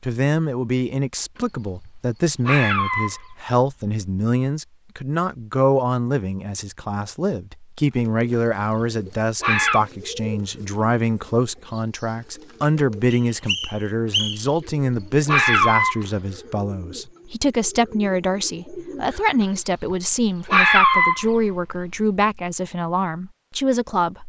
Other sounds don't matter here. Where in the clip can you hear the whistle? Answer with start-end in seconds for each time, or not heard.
13.1-14.6.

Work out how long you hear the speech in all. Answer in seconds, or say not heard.
24 s.